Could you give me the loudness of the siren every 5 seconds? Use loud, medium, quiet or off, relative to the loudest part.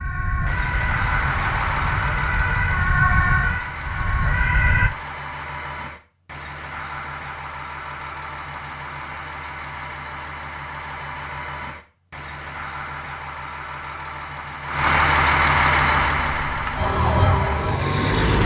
loud, off, off, loud.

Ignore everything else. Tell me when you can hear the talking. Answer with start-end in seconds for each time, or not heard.
not heard.